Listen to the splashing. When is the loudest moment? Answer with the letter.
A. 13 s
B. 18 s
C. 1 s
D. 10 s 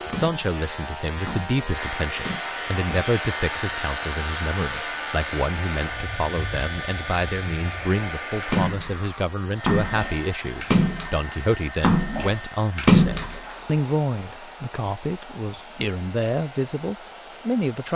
A.